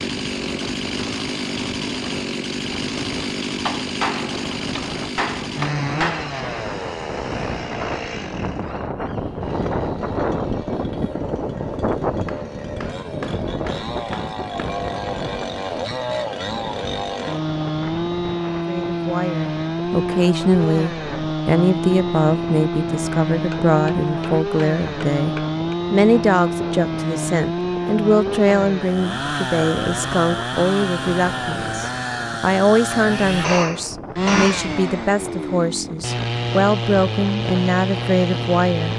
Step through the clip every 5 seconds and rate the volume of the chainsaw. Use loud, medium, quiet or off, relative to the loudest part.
loud, medium, medium, loud, loud, loud, loud, loud.